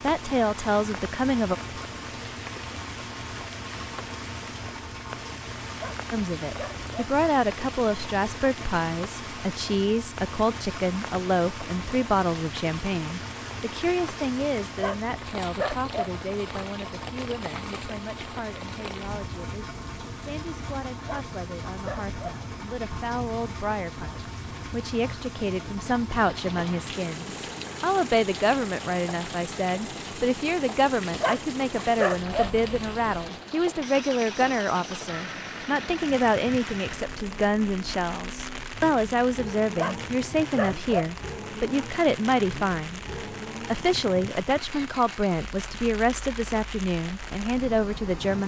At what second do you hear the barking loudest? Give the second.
32 s.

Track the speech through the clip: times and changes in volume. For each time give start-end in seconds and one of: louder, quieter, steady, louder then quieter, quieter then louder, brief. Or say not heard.
0.0-1.6 brief
6.1-48.4 quieter then louder.